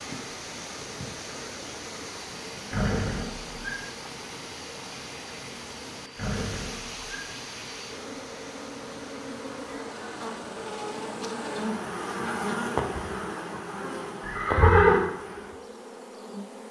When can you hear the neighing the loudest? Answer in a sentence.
The loudest moment of the neighing is at 15 seconds.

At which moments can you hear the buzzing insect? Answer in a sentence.
You can hear the buzzing insect from 0.0 to 16.6 s.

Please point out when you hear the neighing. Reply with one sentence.
You can hear the neighing from 2.7 to 3.5 s, from 6.2 to 7.0 s and from 14.2 to 15.1 s.